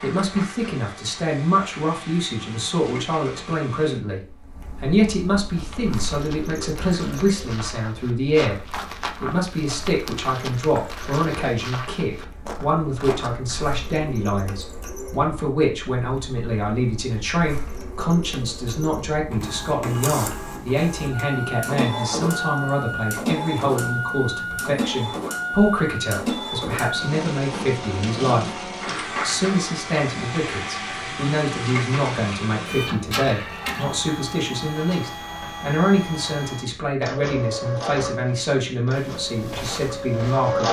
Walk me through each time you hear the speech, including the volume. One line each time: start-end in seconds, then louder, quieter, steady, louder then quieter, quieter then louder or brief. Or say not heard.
0.0-40.6 steady.